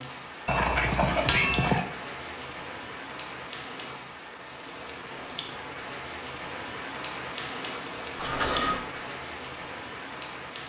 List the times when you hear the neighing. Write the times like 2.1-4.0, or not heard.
0.5-1.9, 8.2-8.8.